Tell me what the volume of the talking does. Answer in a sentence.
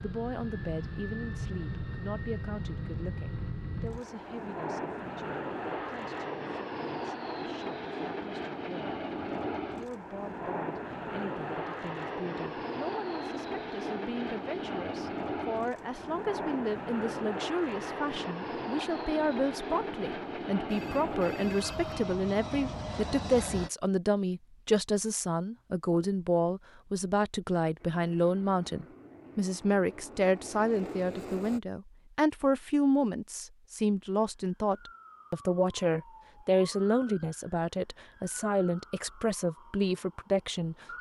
The loudness of the talking goes up.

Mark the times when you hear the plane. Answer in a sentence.
You can hear the plane from 0.0 to 23.7 s and from 27.8 to 31.6 s.